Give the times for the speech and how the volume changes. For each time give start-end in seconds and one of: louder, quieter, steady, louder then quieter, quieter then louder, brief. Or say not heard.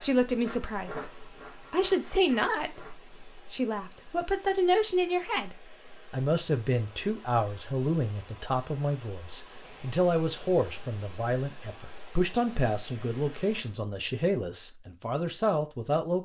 0.0-16.2 steady.